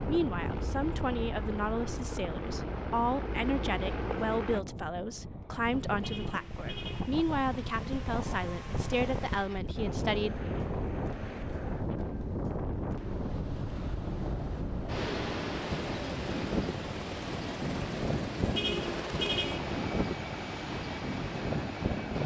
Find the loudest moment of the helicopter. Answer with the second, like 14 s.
4 s.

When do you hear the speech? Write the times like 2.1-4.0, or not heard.
0.1-10.3.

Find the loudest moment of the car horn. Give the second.
19 s.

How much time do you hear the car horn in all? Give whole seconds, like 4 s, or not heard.
2 s.